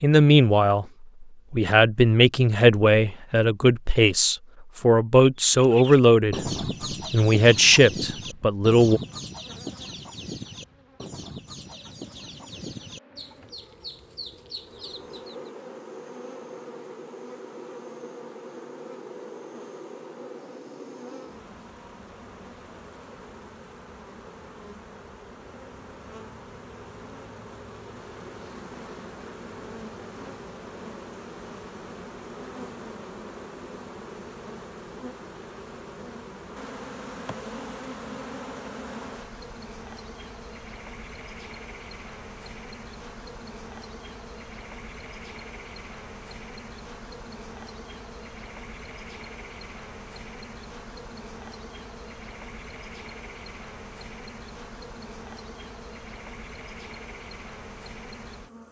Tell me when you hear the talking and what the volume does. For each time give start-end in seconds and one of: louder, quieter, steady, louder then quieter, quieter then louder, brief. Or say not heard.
0.0-0.8 brief
1.5-9.0 steady.